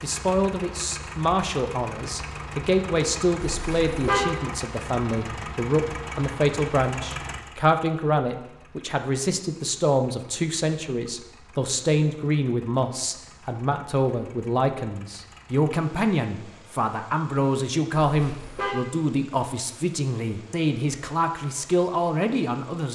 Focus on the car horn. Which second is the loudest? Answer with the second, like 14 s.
4 s.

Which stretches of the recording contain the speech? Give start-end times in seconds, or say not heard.
0.0-22.9.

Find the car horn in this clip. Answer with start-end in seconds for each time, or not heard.
3.5-4.2, 18.1-18.8.